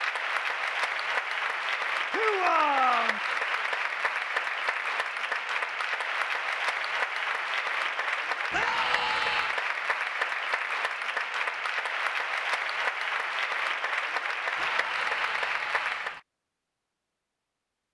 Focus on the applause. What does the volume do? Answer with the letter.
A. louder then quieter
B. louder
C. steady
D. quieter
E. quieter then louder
C.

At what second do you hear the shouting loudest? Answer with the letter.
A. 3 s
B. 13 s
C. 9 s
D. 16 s
A.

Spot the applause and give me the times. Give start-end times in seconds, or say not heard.
0.0-16.2.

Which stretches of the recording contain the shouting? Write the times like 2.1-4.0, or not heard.
2.1-3.2, 8.5-9.6, 14.6-16.2.